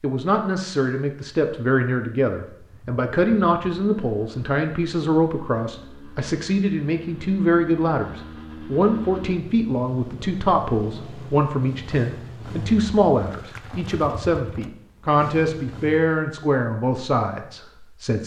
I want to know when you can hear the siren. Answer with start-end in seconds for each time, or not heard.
not heard.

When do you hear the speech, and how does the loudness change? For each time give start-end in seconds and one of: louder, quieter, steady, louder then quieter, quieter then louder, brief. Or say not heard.
0.0-18.2 steady.